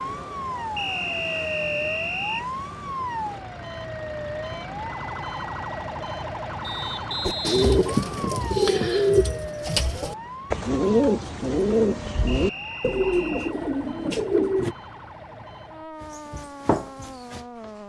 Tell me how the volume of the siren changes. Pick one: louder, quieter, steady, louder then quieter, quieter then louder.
quieter.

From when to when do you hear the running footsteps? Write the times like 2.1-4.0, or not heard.
16.0-17.8.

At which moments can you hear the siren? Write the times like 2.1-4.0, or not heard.
0.0-17.8.